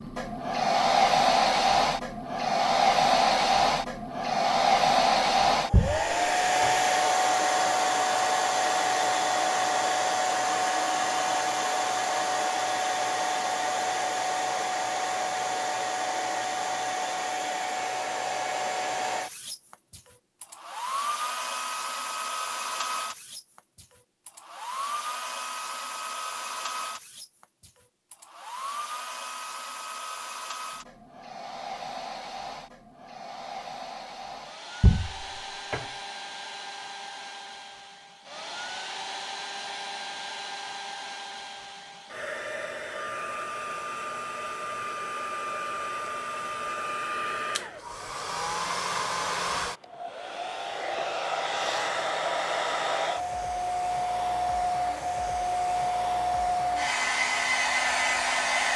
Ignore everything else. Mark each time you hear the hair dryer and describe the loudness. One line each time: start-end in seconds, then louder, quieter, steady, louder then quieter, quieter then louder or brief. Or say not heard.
0.0-58.7 quieter then louder.